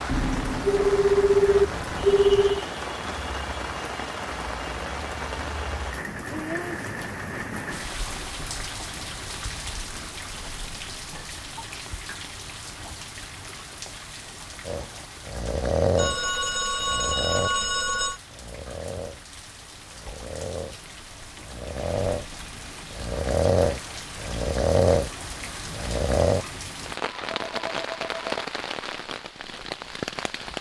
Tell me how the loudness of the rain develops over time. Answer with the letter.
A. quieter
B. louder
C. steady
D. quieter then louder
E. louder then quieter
D.